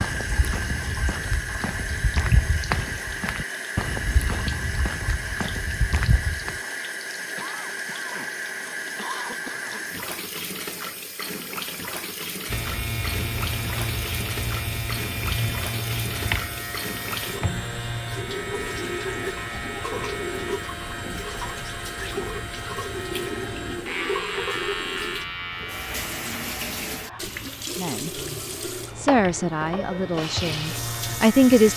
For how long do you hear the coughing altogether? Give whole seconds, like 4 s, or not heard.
2 s.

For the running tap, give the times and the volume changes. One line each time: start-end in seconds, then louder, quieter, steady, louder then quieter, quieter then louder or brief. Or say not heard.
0.0-31.7 steady.